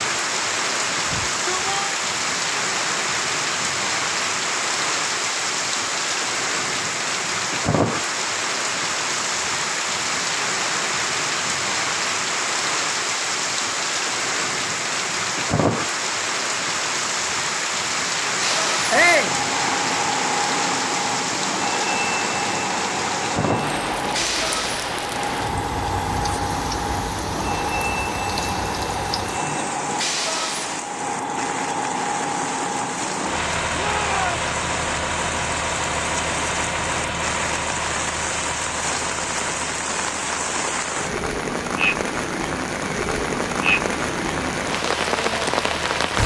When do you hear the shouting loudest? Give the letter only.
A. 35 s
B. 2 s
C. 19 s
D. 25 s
C.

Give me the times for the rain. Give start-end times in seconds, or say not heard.
0.0-46.2.